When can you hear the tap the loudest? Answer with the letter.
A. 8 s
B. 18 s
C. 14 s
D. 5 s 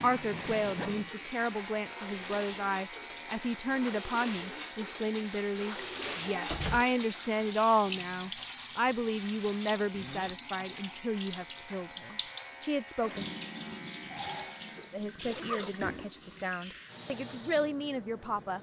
A.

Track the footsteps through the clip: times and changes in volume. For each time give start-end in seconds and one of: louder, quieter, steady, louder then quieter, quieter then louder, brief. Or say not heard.
not heard.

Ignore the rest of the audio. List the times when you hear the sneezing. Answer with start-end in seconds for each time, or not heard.
not heard.